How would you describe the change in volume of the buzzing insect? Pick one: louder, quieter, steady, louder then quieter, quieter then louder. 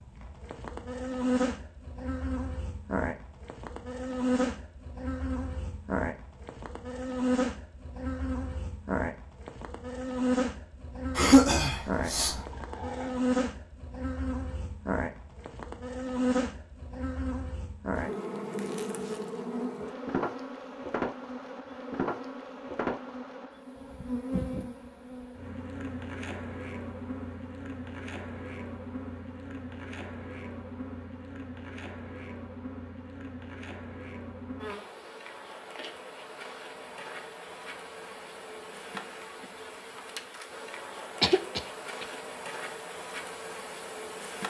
quieter.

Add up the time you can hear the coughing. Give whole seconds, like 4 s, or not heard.
2 s.